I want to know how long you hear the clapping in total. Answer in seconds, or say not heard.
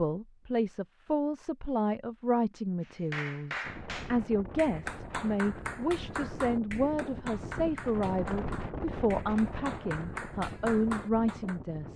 9 s.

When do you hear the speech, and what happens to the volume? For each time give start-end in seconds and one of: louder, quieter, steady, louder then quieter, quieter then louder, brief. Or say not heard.
0.0-11.9 steady.